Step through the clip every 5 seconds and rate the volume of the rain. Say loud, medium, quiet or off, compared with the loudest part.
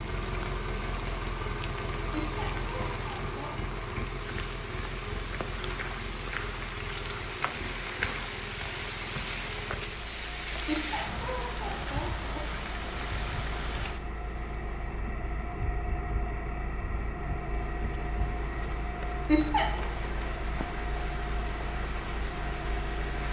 medium, loud, loud, medium, medium.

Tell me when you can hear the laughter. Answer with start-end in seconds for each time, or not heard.
2.1-3.5, 10.7-12.3, 19.2-19.9.